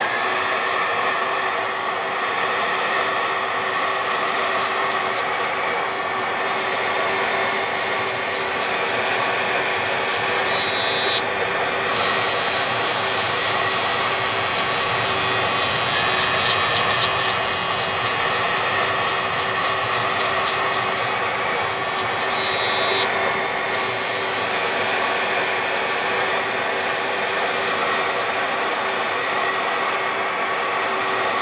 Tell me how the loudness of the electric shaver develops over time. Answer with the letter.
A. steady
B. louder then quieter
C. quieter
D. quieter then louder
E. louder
B.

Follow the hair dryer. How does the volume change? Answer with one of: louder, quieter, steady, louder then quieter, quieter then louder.
steady.